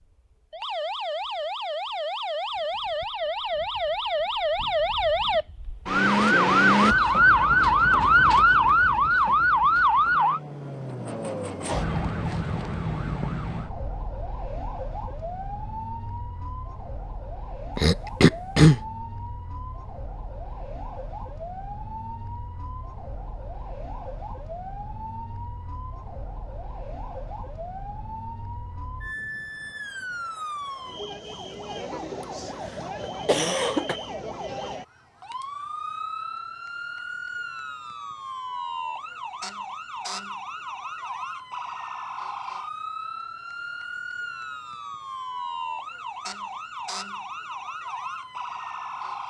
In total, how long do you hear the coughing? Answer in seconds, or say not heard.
3 s.